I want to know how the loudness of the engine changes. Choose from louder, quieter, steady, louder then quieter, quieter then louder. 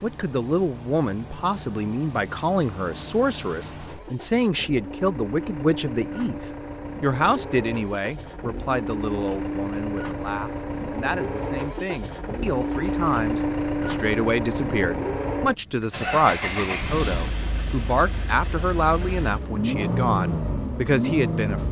louder.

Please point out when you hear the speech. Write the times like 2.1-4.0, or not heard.
0.0-21.6.